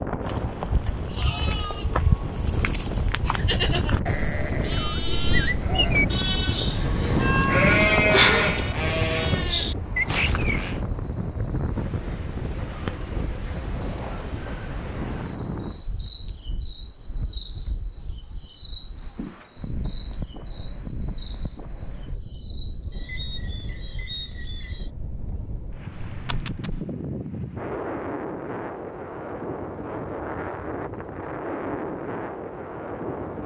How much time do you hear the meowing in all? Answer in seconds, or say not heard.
2 s.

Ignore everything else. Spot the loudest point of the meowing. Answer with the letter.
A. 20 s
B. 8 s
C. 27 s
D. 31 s
B.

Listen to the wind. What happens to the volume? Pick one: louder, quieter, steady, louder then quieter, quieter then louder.
quieter then louder.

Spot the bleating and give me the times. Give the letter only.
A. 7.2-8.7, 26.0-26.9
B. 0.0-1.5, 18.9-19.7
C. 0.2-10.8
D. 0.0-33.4
C.